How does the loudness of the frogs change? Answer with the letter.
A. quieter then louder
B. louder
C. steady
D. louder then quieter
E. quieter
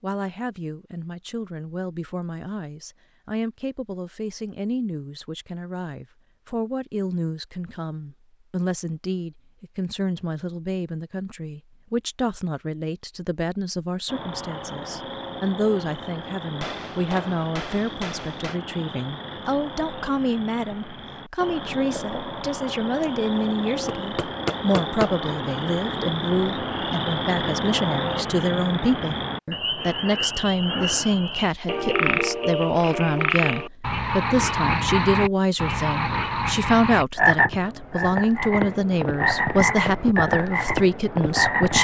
B.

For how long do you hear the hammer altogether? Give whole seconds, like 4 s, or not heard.
3 s.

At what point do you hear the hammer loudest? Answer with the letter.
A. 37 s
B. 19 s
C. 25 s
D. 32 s
C.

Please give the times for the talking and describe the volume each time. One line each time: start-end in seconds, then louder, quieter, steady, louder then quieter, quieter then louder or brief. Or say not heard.
0.0-41.7 louder.